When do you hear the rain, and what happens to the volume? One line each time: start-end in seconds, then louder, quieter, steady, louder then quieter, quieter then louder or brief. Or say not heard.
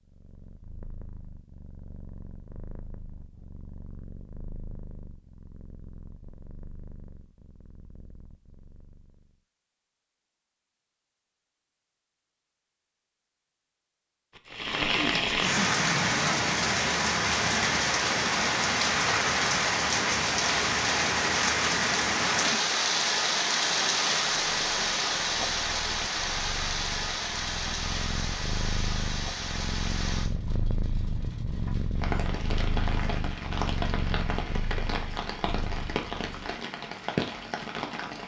14.5-38.2 quieter.